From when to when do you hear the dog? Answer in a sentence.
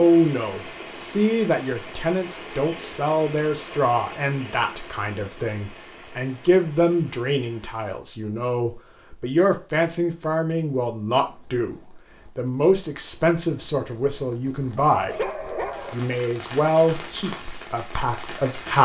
The dog can be heard from 14.8 to 15.9 s.